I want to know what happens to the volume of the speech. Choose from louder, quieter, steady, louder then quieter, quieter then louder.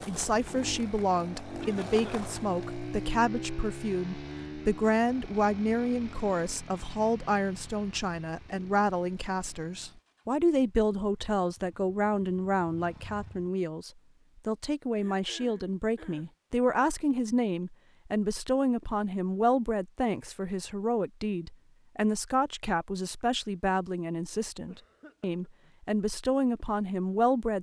steady.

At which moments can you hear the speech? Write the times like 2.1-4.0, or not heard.
0.1-27.5.